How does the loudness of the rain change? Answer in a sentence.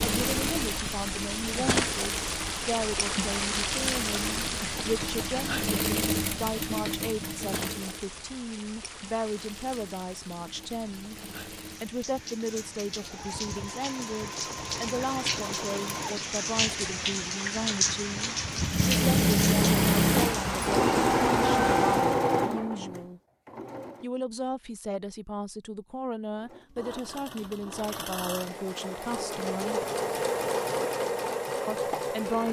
The loudness of the rain goes down, then up.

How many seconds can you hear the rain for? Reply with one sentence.
You can hear the rain for 22 seconds altogether.